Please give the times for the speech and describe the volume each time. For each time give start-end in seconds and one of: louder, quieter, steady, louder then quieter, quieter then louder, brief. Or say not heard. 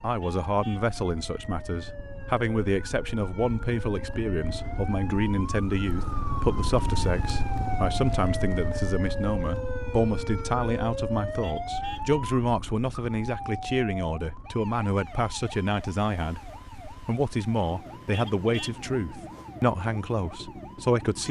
0.0-21.2 steady.